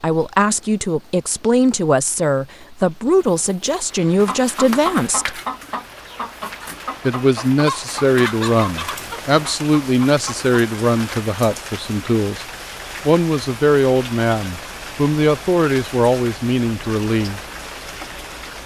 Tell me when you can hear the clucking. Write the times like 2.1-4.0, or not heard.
4.2-10.5.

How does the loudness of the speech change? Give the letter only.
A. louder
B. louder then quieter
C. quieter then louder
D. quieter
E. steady
E.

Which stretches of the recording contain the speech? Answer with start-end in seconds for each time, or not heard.
0.0-5.4, 7.0-12.4, 13.1-17.4.